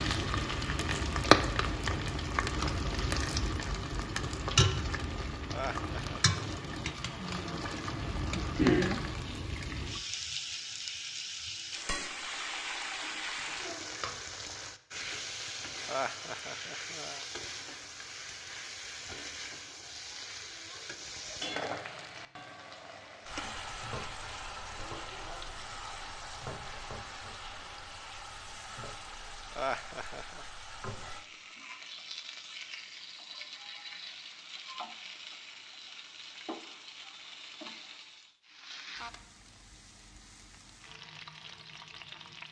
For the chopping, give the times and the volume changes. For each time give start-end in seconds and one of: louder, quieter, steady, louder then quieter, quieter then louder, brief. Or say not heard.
not heard.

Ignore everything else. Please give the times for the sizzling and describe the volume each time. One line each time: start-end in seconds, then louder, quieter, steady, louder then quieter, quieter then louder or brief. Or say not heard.
0.0-42.4 quieter.